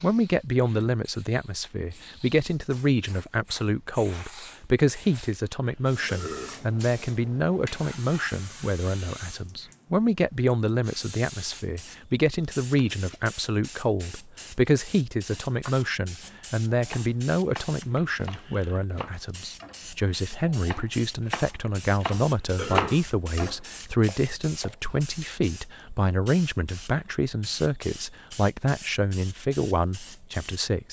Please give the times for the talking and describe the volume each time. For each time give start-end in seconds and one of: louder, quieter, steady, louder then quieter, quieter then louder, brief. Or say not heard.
0.0-30.8 steady.